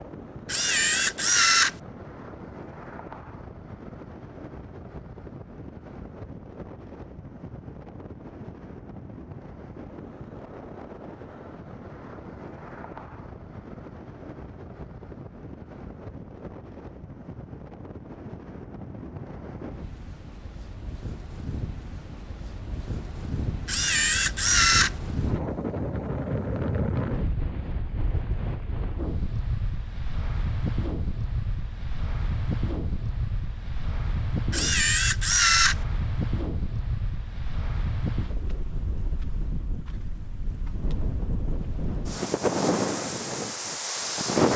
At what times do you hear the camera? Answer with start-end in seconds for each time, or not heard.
0.5-1.8, 23.6-24.9, 34.5-35.8.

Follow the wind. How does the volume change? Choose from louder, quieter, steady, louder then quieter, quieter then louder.
louder.